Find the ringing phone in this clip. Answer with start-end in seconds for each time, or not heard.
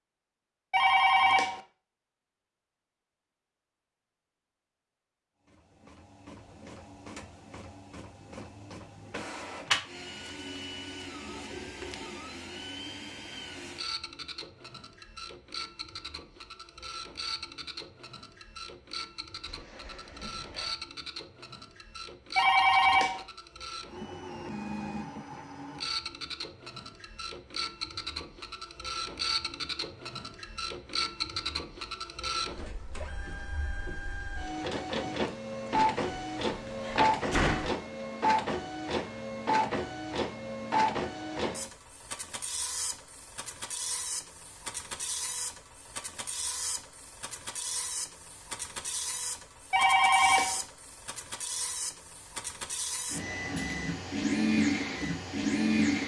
0.7-1.6, 22.4-23.2, 49.7-50.6.